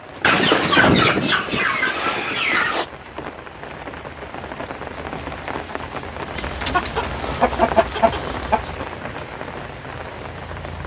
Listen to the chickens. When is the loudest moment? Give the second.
1 s.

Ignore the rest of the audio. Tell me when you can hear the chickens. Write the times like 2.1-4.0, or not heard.
0.2-2.9, 6.3-8.8.